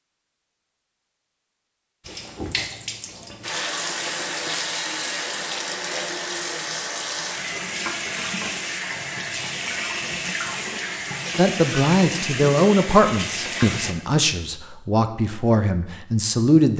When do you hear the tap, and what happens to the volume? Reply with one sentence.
You can hear the tap from 2.0 to 13.9 s, at a steady volume.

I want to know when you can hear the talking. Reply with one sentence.
The talking can be heard from 11.3 to 16.7 s.